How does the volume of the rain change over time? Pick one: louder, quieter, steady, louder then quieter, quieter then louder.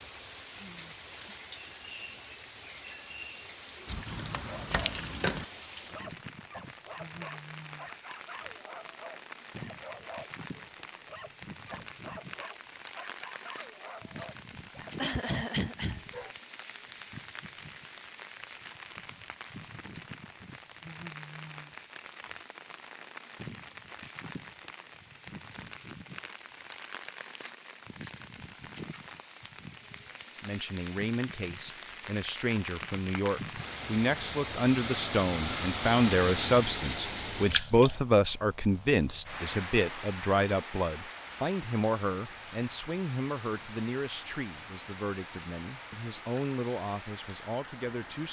louder then quieter.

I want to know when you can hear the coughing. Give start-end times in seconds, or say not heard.
14.9-16.0.